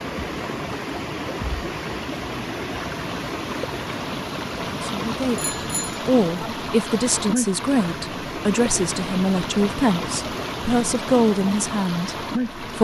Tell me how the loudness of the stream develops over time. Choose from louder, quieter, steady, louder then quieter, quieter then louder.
steady.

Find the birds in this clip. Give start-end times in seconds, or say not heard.
not heard.